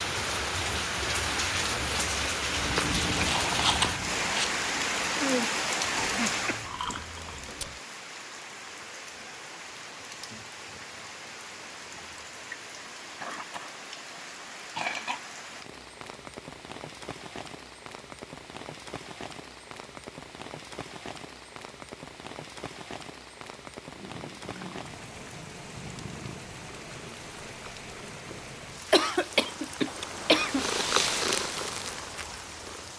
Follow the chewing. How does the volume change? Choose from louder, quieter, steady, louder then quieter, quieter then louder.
quieter.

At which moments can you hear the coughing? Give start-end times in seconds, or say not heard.
6.0-7.0, 13.2-15.2, 28.9-30.6.